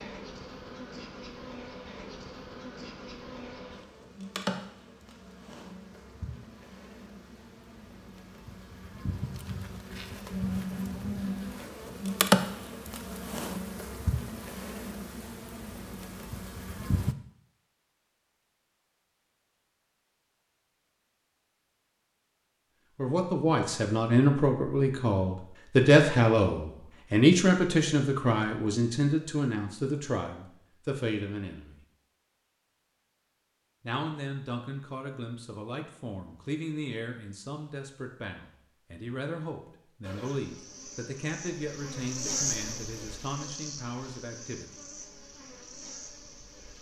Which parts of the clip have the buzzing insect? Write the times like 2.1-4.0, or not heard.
0.0-17.1, 40.0-46.7.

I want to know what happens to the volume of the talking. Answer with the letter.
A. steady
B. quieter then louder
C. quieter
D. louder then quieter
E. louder
C.